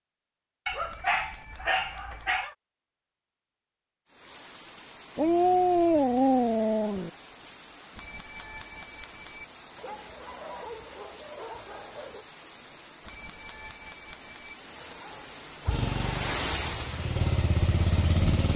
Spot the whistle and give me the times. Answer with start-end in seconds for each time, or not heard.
not heard.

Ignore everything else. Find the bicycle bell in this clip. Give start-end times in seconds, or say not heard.
0.9-2.4, 8.0-9.4, 13.1-14.6.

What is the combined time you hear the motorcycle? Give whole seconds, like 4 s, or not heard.
3 s.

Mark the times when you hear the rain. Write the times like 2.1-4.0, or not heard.
4.0-18.5.